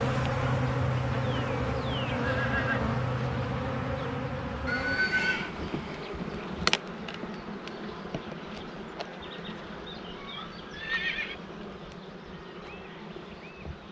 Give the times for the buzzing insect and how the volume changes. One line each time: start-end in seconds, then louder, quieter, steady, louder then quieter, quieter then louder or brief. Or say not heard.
0.0-13.8 quieter.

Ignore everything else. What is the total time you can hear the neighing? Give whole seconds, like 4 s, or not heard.
2 s.